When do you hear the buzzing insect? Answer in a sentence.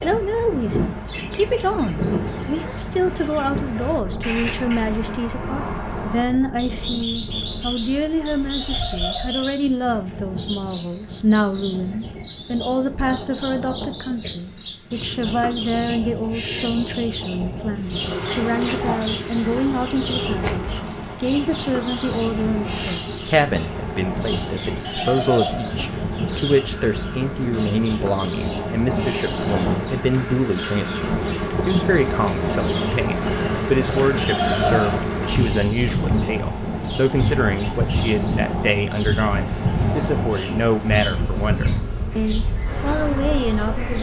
You can hear the buzzing insect from 17.8 to 43.9 s.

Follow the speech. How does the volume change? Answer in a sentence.
The volume of the speech stays about the same.